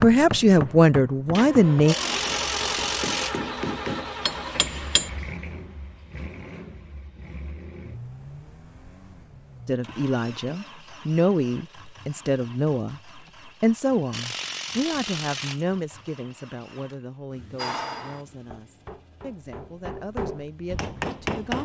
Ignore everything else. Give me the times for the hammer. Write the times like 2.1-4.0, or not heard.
0.0-5.1, 17.6-21.6.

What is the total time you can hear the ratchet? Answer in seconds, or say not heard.
3 s.